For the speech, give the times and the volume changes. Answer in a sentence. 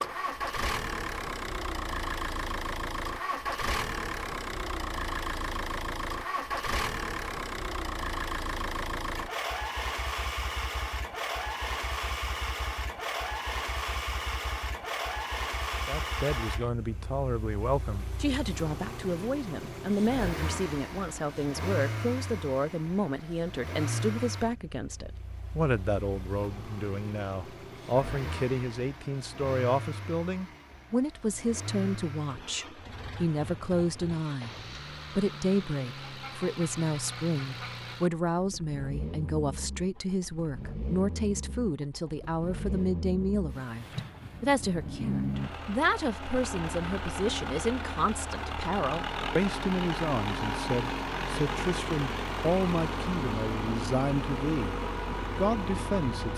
You can hear the speech from 15.8 to 34.5 s, at a steady volume; from 35.1 to 54.8 s, at a steady volume; and briefly from 55.4 to 56.3 s.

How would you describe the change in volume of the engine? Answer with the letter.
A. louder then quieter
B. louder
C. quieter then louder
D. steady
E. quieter
C.